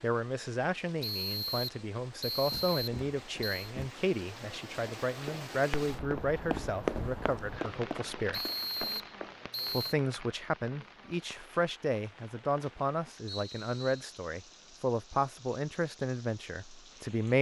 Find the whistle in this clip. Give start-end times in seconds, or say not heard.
1.0-3.7, 8.3-9.9, 13.2-14.1.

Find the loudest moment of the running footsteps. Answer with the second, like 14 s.
7 s.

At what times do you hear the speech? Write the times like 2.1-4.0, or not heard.
0.0-8.4, 9.7-17.3.